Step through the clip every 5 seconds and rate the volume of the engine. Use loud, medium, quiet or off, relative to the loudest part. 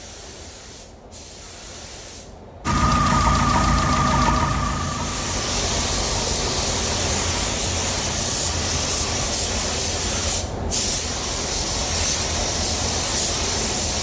loud, quiet, off.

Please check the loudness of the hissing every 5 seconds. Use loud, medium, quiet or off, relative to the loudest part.
quiet, loud, loud.